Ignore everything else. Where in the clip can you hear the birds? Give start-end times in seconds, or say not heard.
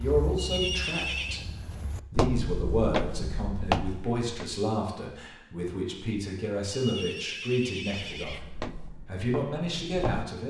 not heard.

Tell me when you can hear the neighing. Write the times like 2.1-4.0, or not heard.
0.3-1.4, 6.7-8.4.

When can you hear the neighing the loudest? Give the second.
1 s.